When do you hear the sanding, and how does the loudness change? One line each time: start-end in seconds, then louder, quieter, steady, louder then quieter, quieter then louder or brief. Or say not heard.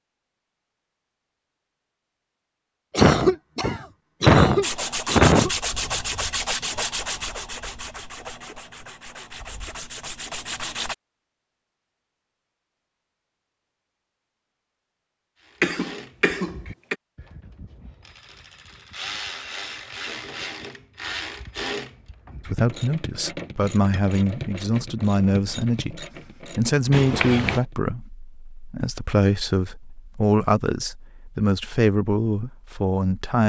4.6-10.9 quieter then louder.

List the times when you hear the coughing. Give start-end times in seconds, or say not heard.
2.9-5.5, 15.6-16.9, 26.9-27.6.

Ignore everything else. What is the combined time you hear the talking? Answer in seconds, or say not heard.
11 s.